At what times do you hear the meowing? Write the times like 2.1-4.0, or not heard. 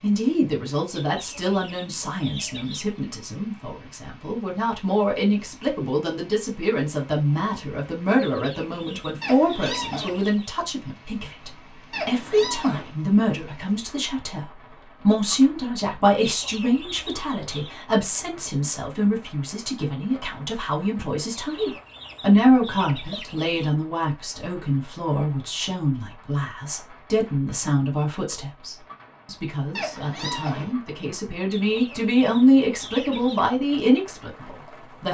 9.2-10.2, 11.9-12.9, 29.8-30.8.